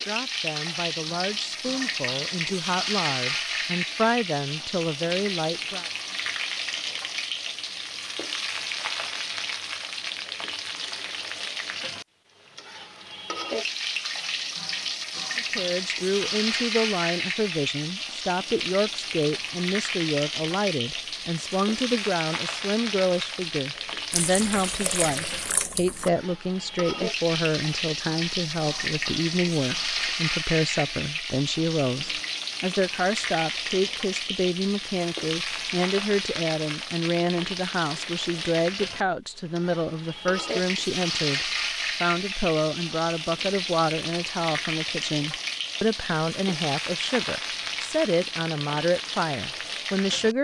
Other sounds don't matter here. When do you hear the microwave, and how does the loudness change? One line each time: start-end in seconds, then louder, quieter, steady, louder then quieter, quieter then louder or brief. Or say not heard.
not heard.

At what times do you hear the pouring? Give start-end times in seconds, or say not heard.
24.1-26.1.